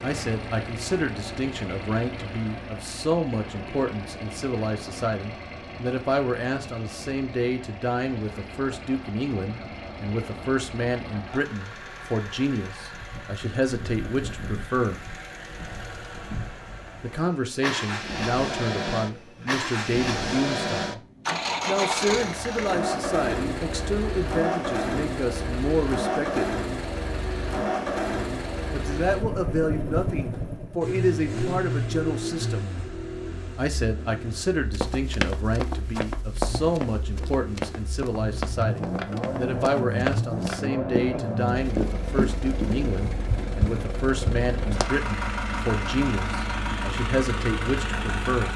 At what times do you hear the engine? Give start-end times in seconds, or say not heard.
0.0-48.5.